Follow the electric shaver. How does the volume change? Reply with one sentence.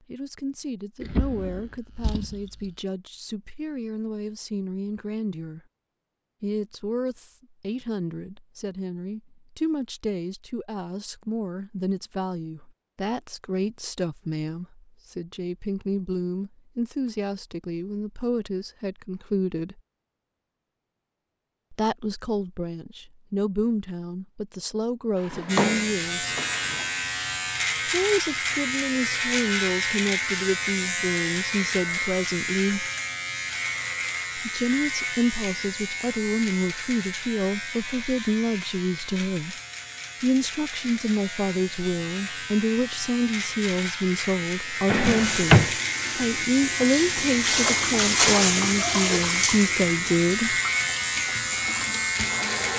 The volume of the electric shaver goes down, then up.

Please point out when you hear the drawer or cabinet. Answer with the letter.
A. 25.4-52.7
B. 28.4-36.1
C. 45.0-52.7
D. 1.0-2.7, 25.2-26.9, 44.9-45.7
D.